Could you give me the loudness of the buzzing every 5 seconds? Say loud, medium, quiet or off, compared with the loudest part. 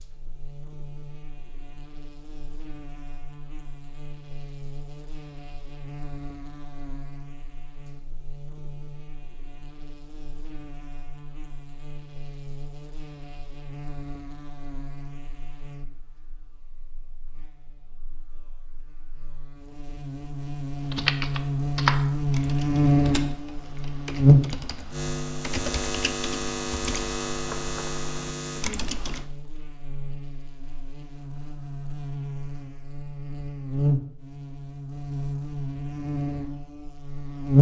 quiet, quiet, quiet, quiet, loud, medium, medium, loud.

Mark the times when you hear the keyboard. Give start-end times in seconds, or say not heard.
20.9-29.3.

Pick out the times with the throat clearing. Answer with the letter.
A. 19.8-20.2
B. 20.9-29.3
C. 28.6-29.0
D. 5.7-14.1
C.